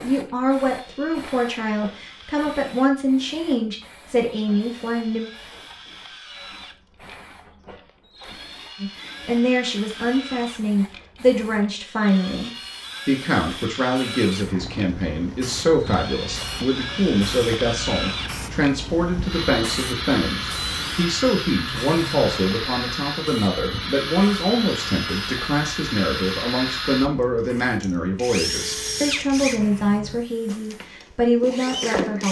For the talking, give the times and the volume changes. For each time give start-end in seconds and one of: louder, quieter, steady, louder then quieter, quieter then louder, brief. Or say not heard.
0.0-5.3 steady
8.8-32.2 steady.